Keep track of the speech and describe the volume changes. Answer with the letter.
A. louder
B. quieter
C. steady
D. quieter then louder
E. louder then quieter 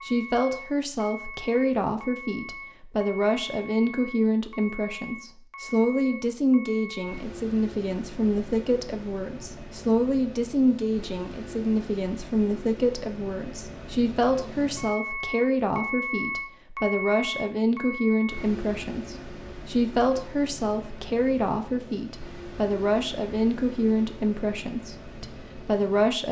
C.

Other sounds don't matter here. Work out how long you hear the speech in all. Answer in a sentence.
The speech can be heard for 26 seconds in total.